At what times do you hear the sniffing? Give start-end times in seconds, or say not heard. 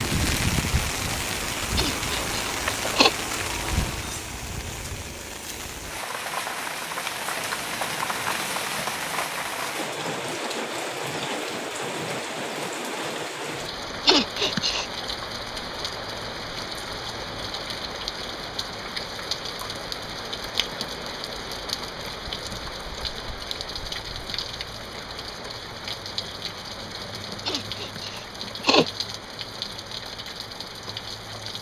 1.8-3.1, 14.1-14.8, 27.4-28.9.